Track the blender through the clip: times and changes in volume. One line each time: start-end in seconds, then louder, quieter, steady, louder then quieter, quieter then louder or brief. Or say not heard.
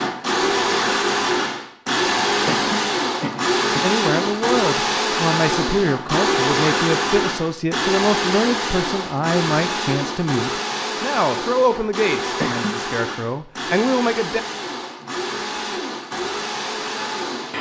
0.0-17.5 quieter.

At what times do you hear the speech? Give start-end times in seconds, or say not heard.
3.8-14.4.